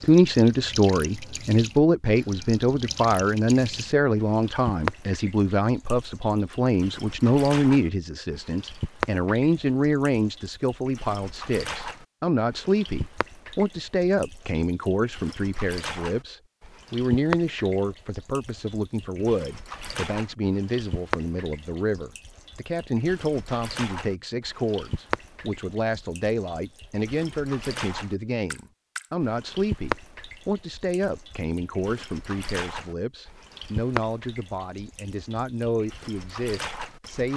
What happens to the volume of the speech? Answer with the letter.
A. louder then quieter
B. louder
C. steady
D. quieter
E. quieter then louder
D.